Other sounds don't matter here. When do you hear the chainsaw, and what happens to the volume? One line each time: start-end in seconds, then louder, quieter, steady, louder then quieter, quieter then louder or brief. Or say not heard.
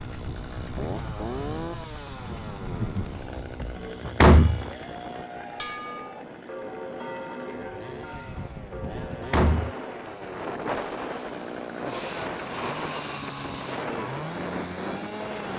0.0-15.5 quieter then louder.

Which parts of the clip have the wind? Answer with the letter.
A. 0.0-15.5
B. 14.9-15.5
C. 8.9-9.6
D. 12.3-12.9
A.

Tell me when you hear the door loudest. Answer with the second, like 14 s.
4 s.